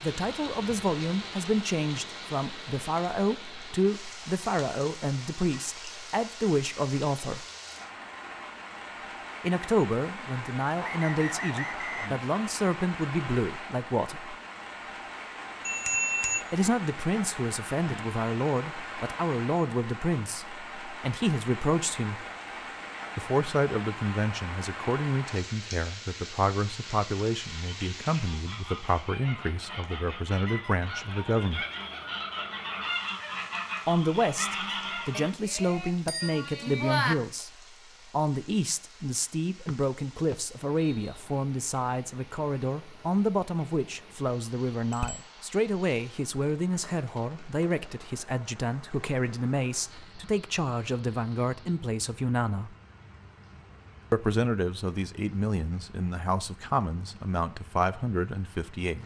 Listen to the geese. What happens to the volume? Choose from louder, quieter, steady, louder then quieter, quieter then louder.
louder.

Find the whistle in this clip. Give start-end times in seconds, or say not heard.
10.8-12.1, 39.6-41.2.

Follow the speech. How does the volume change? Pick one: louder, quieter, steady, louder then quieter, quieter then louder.
steady.